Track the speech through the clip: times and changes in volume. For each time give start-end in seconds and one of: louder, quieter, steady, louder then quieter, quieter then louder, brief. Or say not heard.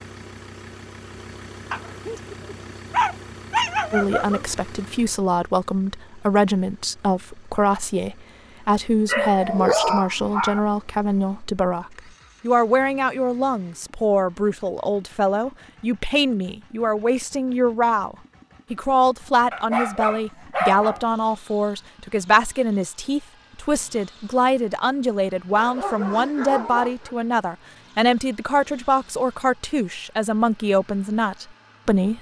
3.9-32.1 steady.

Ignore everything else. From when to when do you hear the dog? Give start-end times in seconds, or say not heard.
1.7-4.5, 9.1-10.6, 19.5-21.1, 25.6-27.1.